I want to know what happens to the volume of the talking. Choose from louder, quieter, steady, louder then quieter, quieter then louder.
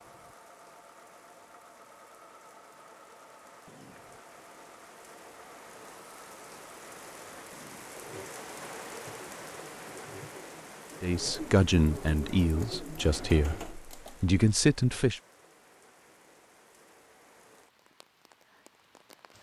quieter then louder.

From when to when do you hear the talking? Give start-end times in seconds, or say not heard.
11.0-15.2.